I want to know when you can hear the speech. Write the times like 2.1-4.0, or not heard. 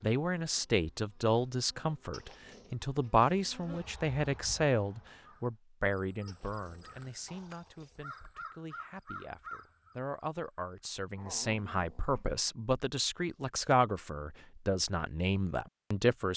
0.0-16.3.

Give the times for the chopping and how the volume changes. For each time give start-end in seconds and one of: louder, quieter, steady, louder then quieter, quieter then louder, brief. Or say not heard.
not heard.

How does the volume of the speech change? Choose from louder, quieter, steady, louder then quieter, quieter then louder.
quieter then louder.